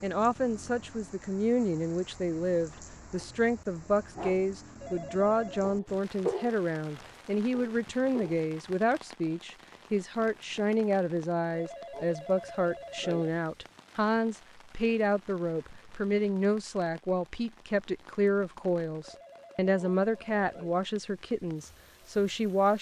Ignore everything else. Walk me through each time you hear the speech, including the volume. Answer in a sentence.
You can hear the speech from 0.0 to 22.7 s, at a steady volume.